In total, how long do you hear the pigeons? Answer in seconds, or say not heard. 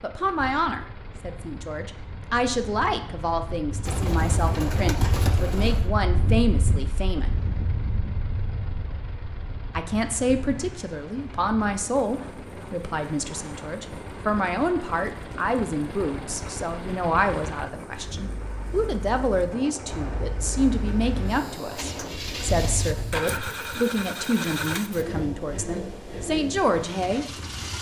3 s.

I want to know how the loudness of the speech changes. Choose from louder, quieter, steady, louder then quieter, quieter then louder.
steady.